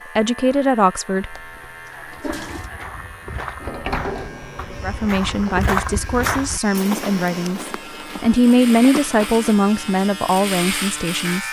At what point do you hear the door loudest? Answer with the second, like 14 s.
4 s.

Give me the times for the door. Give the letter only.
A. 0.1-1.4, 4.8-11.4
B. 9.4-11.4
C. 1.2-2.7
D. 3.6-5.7
D.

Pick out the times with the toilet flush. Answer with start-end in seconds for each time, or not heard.
1.2-2.7.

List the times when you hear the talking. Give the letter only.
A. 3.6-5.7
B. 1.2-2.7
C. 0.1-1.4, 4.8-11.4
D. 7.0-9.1
C.